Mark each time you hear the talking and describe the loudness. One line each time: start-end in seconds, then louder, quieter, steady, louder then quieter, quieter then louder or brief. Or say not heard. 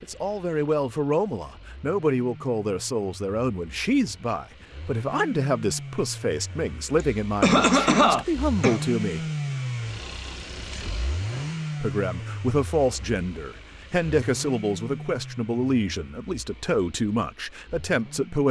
0.0-9.2 steady
11.8-18.4 steady.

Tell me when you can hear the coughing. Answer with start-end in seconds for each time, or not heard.
7.0-8.8.